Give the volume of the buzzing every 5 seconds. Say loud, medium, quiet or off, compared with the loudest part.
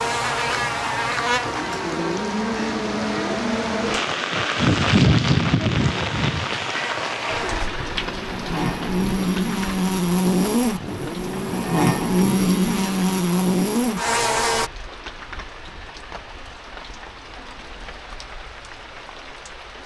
medium, medium, loud, off.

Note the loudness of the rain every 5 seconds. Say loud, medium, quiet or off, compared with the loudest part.
loud, loud, quiet, quiet.